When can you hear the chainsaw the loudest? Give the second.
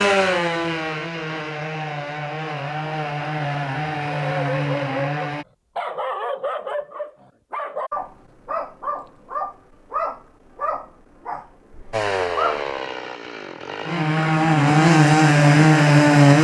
16 s.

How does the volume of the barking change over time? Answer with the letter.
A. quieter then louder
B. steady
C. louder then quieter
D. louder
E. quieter
E.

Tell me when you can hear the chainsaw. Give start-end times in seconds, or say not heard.
0.0-5.5, 11.9-16.3.